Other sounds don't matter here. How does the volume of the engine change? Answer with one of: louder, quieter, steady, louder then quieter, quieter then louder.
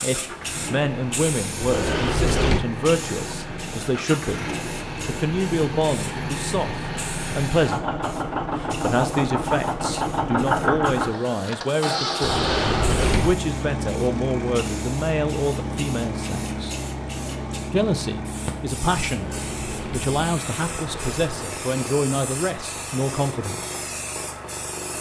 louder then quieter.